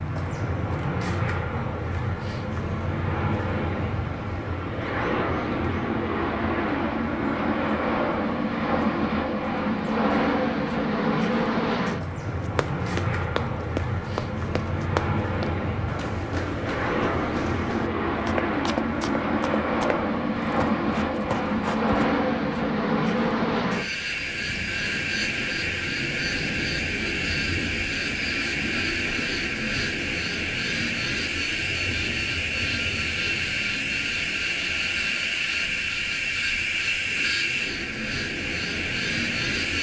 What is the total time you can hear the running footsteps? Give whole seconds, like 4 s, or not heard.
10 s.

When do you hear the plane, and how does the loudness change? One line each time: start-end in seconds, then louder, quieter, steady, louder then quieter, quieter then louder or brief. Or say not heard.
0.0-39.7 steady.